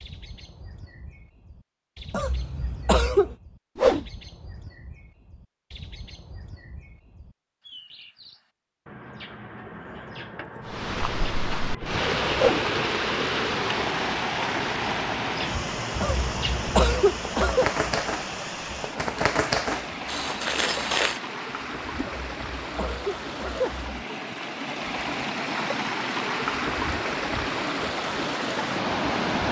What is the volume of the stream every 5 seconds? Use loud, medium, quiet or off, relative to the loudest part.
off, off, loud, medium, medium, loud.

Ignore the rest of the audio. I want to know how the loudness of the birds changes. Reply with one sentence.
The loudness of the birds goes up.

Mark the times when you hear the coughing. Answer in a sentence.
You can hear the coughing from 2.1 to 3.4 s, from 16.0 to 17.7 s and from 22.0 to 23.9 s.